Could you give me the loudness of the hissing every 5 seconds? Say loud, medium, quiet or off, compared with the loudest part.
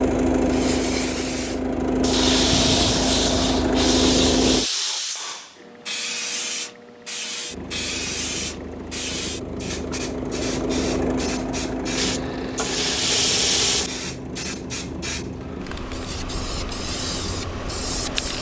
loud, loud, medium, loud.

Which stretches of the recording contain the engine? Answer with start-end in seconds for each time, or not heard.
0.0-4.7, 7.5-18.3.